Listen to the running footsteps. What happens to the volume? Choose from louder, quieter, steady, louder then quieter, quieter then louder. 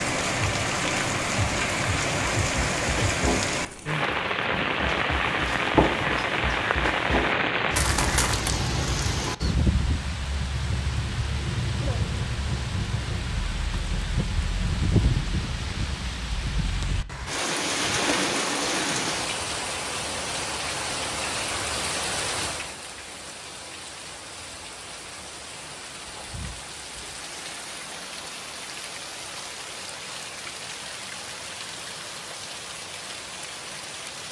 quieter then louder.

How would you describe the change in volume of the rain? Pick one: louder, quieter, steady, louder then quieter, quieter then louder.
quieter.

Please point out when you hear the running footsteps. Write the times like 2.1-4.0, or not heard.
2.0-8.5.